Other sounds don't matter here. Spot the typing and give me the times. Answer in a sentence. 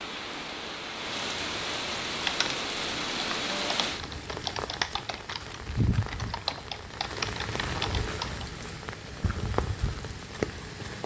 The typing can be heard from 2.2 to 8.6 s.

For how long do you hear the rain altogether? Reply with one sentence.
You can hear the rain for 11 seconds altogether.